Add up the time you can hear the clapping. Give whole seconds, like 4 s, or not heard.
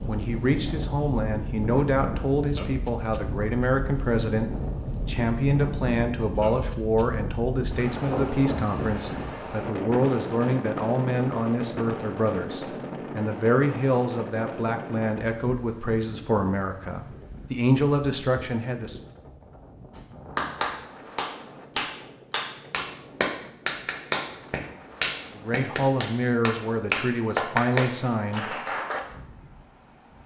9 s.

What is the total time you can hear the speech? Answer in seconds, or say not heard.
22 s.